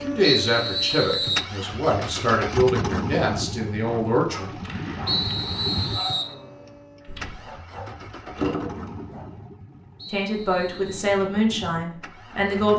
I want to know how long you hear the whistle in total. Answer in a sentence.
The whistle can be heard for 4 seconds in total.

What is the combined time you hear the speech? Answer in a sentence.
The speech can be heard for 7 seconds in total.